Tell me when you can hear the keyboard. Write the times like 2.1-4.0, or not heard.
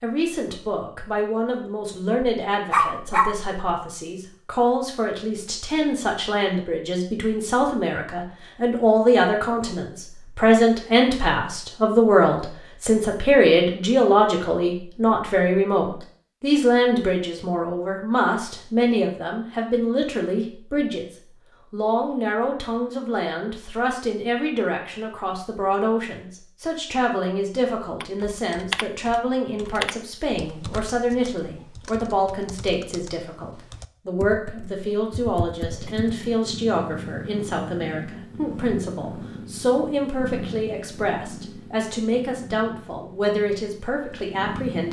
28.0-36.1.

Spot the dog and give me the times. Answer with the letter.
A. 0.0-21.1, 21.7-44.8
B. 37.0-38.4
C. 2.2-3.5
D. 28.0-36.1
C.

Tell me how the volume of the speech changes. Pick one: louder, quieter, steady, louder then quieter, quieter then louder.
louder then quieter.